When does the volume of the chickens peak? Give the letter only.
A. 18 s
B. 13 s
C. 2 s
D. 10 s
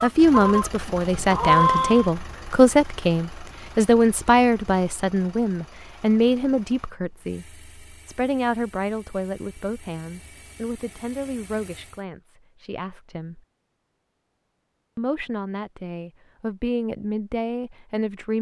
C.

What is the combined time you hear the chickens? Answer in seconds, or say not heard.
2 s.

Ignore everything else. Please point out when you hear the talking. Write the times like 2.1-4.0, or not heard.
0.0-13.4, 14.9-18.3.